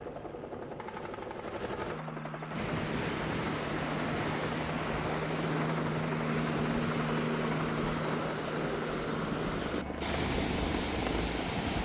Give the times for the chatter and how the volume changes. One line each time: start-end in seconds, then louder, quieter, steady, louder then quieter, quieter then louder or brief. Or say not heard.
not heard.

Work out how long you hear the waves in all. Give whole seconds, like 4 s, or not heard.
9 s.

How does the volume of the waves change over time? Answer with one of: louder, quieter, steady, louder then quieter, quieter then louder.
steady.